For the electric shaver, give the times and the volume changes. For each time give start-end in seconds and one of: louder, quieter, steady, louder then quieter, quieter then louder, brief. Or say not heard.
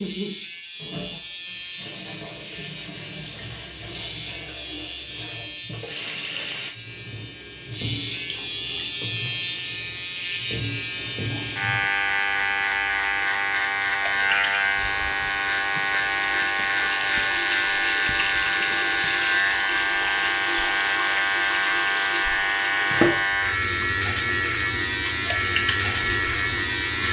0.0-27.0 louder.